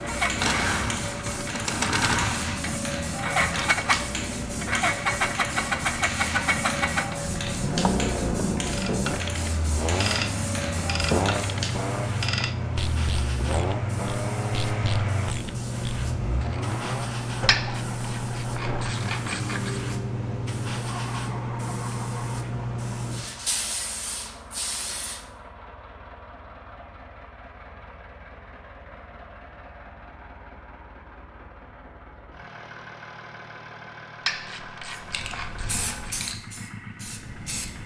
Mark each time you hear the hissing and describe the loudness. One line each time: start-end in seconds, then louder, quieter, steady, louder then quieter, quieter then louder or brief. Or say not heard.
0.0-25.2 steady
34.9-37.8 brief.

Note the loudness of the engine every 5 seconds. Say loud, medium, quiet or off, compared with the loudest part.
loud, loud, medium, medium, quiet, quiet, quiet, quiet.